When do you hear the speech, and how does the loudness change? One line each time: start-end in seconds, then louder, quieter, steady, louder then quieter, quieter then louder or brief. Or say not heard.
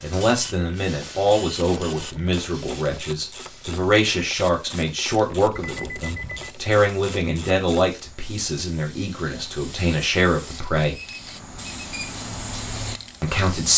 0.0-10.9 steady
13.2-13.7 brief.